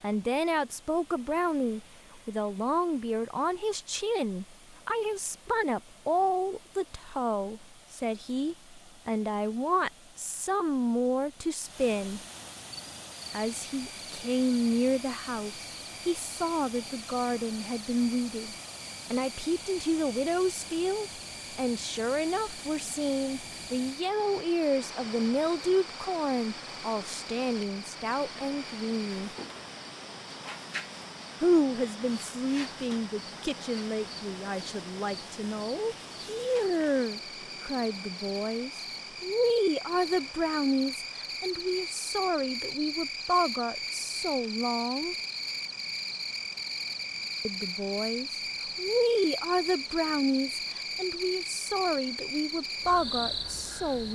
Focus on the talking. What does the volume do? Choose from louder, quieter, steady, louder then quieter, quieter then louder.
steady.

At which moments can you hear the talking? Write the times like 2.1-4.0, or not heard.
0.0-12.2, 13.3-29.3, 31.4-45.1, 47.5-54.0.